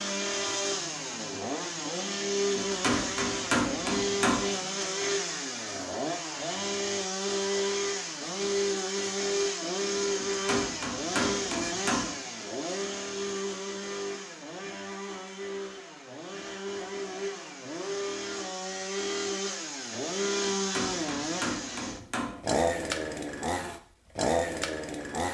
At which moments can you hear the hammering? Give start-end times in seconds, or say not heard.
2.5-4.5, 10.2-12.2, 20.4-22.4.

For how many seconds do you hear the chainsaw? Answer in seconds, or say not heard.
25 s.